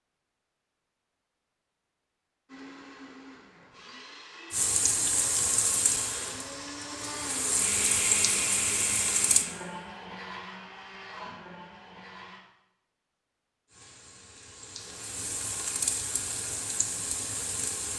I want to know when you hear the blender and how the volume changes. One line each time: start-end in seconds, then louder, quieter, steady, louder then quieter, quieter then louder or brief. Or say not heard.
2.5-12.4 louder then quieter.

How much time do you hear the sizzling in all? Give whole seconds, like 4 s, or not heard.
9 s.